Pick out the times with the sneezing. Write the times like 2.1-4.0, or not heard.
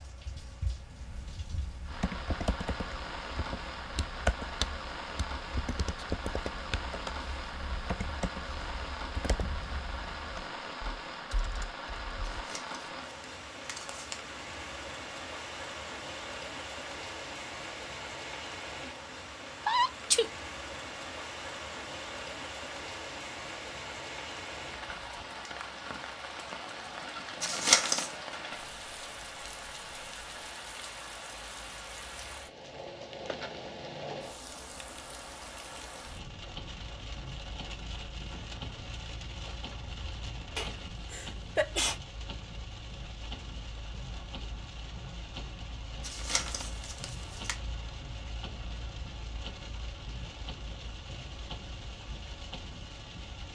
19.6-20.3, 40.5-42.0.